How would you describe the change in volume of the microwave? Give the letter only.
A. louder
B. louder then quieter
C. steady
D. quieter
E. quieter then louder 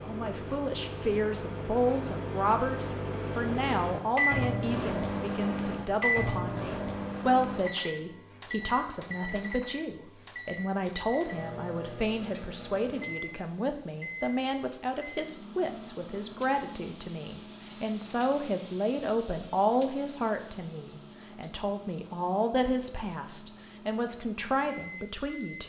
D.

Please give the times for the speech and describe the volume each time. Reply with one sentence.
The speech can be heard from 0.0 to 25.6 s, at a steady volume.